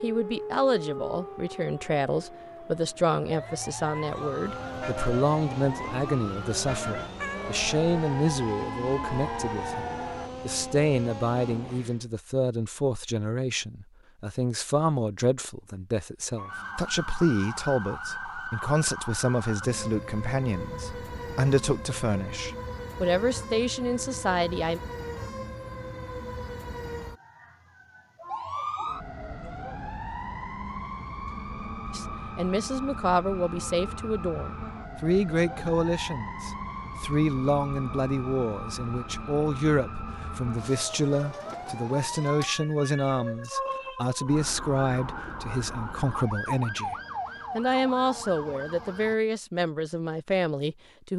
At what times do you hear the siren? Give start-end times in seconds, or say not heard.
0.0-10.3, 16.4-49.1.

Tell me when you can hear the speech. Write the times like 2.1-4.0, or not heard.
0.0-24.8, 31.9-47.0, 47.5-51.1.